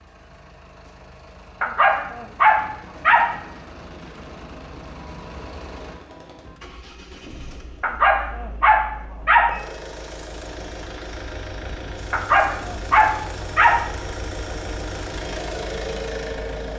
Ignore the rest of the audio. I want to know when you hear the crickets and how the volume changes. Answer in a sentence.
The crickets can't be heard in this clip.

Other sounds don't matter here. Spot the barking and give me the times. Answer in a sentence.
You can hear the barking from 1.6 to 3.4 s, from 7.8 to 9.6 s and from 12.1 to 13.8 s.